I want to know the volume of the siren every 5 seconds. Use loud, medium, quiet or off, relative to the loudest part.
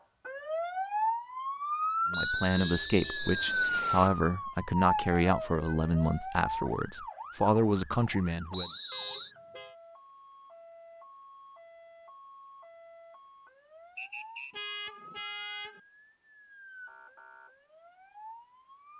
loud, medium, quiet, quiet.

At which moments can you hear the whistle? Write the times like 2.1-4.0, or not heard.
2.1-4.1, 8.5-9.3, 13.9-14.6.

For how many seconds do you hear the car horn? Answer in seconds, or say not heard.
3 s.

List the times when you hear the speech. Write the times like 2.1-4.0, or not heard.
2.1-8.7.